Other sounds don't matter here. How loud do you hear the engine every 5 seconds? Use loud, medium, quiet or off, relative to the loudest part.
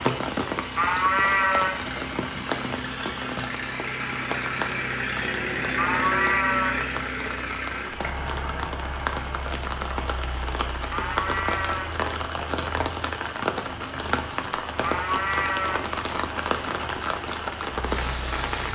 loud, loud, medium, medium.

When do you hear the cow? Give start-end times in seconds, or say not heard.
0.8-1.8, 5.8-6.8, 10.9-11.9, 14.8-15.8.